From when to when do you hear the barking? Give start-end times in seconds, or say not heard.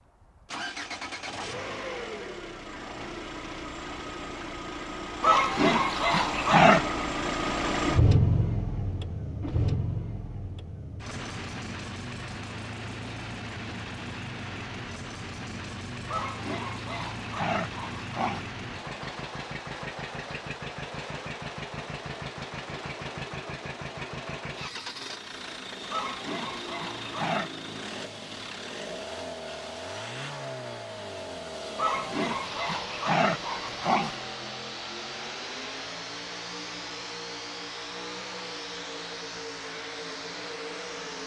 5.2-6.8, 16.1-18.4, 25.9-27.5, 31.8-34.2.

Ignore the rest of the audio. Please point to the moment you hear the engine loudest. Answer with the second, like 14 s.
8 s.